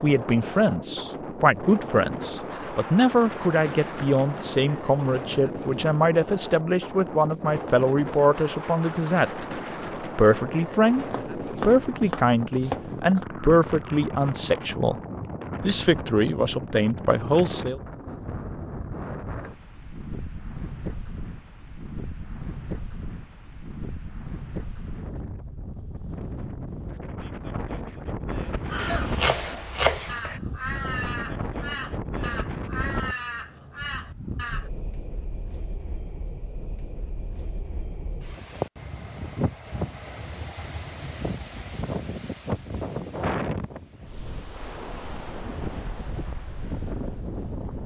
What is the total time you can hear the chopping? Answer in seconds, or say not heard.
4 s.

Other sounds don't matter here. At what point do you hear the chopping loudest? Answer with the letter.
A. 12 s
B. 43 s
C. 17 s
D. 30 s
D.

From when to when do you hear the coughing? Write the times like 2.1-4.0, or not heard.
28.9-29.6.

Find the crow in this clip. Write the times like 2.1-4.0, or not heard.
28.4-34.7.